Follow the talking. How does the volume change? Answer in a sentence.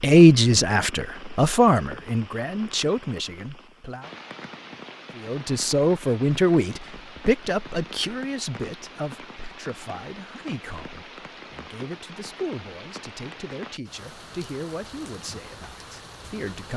The volume of the talking goes down.